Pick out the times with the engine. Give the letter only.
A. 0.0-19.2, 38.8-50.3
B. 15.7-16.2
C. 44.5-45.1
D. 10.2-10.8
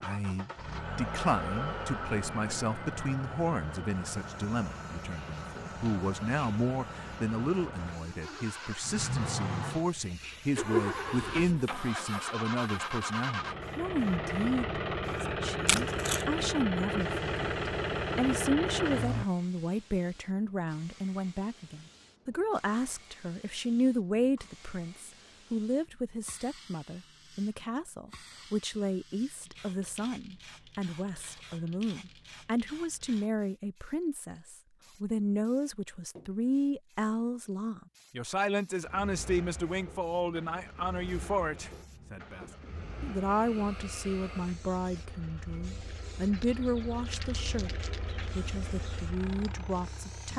A.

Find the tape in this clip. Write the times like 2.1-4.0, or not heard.
15.7-16.2.